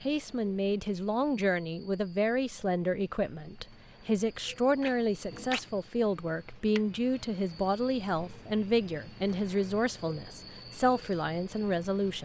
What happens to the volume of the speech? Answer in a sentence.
The volume of the speech stays about the same.